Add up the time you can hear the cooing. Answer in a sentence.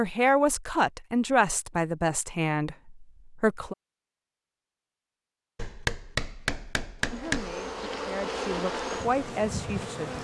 The cooing can't be heard in this clip.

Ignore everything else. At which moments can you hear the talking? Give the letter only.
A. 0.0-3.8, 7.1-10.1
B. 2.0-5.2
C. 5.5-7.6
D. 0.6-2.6
A.